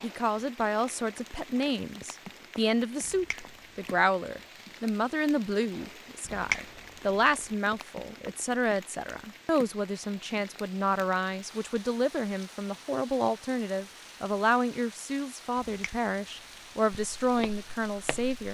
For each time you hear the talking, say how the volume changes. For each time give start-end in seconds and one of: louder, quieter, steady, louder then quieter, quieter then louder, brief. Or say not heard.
0.0-18.4 steady.